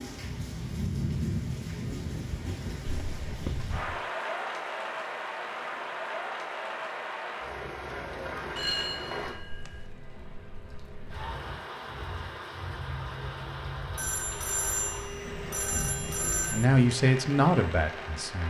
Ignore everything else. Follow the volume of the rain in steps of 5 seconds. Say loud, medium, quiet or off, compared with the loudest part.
loud, loud, medium, medium.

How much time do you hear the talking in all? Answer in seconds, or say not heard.
2 s.